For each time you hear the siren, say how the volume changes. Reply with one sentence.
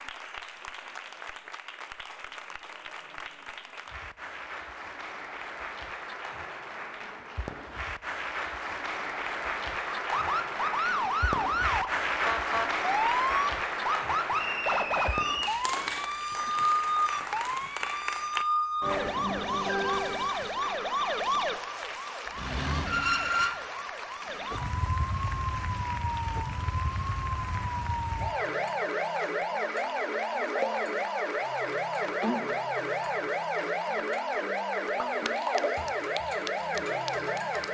You can hear the siren from 9.9 to 37.6 s, at a steady volume.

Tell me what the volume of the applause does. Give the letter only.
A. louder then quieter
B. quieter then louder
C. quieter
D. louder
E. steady
A.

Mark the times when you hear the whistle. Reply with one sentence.
The whistle can be heard from 14.3 to 15.6 s.